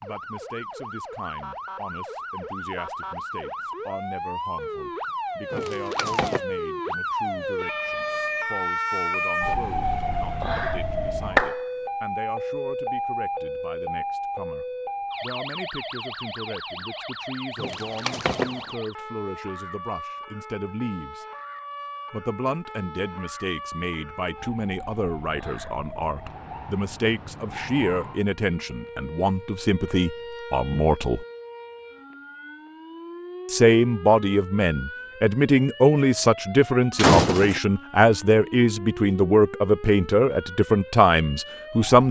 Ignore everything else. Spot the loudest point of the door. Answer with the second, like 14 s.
37 s.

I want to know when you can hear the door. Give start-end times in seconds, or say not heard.
5.5-6.4, 17.6-18.6, 37.0-37.6.